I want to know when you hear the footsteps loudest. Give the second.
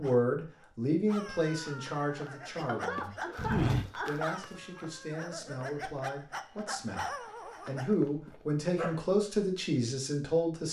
4 s.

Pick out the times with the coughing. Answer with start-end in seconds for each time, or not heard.
2.6-4.3.